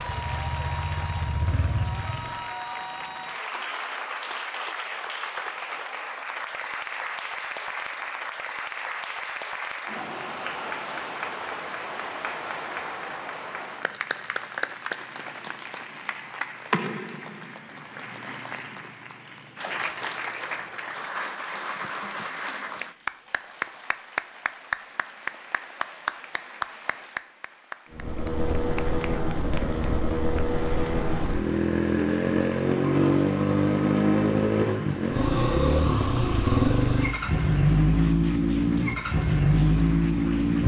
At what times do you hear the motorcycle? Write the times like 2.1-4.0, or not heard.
0.0-2.5, 27.9-40.6.